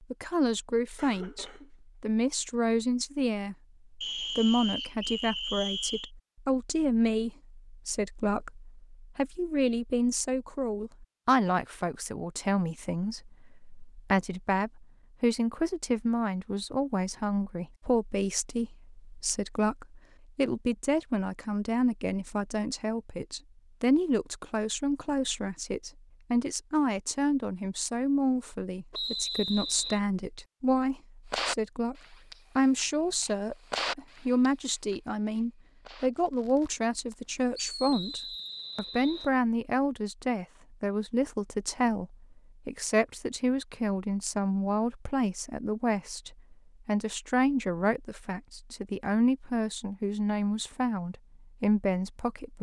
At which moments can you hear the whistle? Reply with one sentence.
You can hear the whistle from 4.0 to 6.1 s, from 28.9 to 30.0 s and from 37.9 to 39.3 s.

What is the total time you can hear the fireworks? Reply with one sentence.
You can hear the fireworks for 7 seconds altogether.